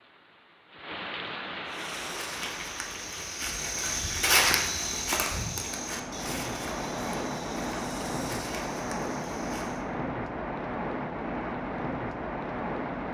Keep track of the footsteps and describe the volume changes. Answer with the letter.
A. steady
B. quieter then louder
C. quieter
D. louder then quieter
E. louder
D.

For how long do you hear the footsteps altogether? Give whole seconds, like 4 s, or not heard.
8 s.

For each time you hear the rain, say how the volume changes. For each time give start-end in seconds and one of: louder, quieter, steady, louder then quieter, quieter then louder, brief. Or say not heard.
0.0-13.1 quieter then louder.